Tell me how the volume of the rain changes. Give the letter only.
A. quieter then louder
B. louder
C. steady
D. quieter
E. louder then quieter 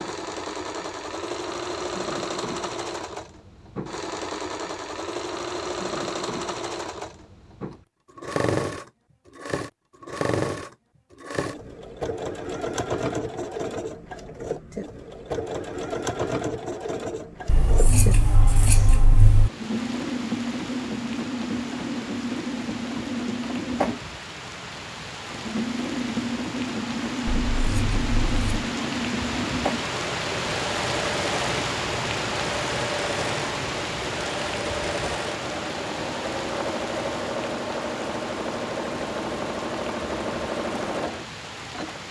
E.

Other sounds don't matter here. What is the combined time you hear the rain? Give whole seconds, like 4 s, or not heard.
23 s.